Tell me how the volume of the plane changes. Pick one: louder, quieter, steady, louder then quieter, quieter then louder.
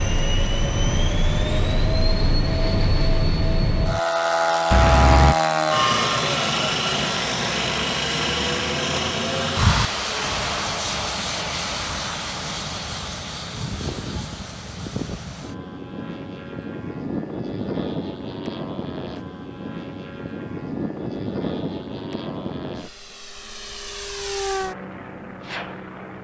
quieter.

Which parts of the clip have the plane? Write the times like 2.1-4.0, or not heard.
0.0-26.1.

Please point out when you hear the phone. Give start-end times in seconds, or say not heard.
4.7-5.3.